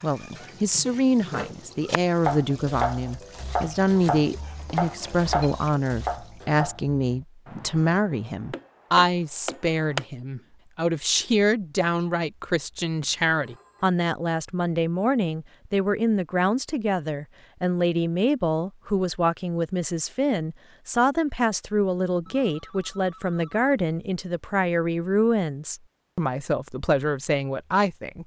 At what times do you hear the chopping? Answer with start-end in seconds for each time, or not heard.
0.3-10.1.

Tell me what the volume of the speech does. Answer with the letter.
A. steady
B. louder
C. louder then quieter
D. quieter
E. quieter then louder
A.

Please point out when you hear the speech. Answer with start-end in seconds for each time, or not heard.
0.0-28.2.